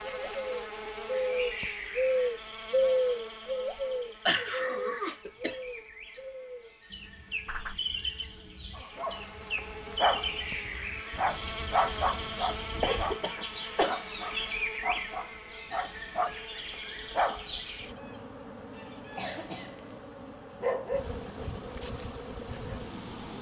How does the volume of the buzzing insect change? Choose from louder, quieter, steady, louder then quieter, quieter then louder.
quieter then louder.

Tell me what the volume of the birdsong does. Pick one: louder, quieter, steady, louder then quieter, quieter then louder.
quieter.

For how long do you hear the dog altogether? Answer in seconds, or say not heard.
9 s.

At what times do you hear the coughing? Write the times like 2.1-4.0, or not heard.
4.2-6.2, 12.8-13.9, 18.9-20.1.